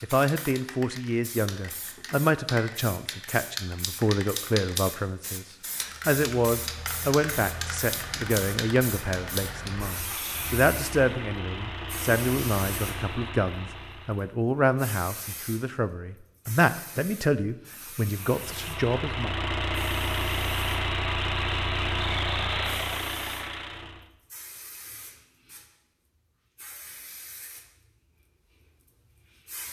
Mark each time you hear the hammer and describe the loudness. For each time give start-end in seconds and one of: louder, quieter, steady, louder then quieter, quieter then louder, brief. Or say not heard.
not heard.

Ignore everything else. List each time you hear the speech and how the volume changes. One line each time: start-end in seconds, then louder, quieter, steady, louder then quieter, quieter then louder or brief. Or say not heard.
0.0-19.4 steady.